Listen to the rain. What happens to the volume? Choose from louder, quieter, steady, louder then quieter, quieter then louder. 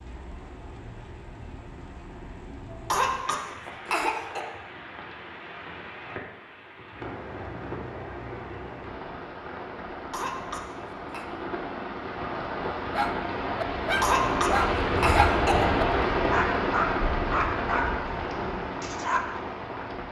louder.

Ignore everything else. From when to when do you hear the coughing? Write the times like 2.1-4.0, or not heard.
2.7-4.4, 9.9-11.2, 13.8-15.7.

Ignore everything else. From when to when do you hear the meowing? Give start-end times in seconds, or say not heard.
not heard.